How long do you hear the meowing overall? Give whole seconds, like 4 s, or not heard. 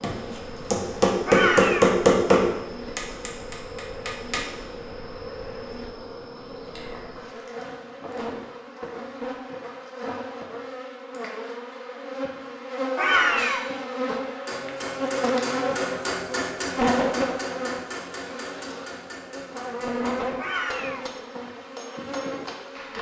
2 s.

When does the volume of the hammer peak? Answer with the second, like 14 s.
2 s.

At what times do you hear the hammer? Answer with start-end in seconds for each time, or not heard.
0.0-4.5, 13.3-22.9.